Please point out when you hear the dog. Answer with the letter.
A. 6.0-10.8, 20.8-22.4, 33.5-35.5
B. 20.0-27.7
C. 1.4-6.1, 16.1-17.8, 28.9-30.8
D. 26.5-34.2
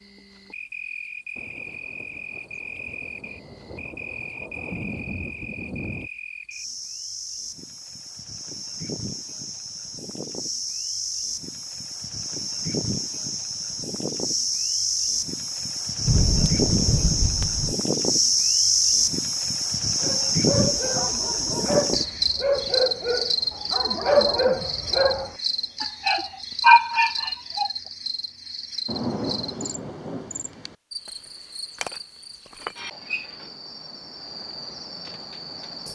B.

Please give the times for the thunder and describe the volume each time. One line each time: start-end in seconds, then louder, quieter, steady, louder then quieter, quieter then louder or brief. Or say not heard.
1.4-6.1 louder
16.1-17.8 brief
28.9-30.8 brief.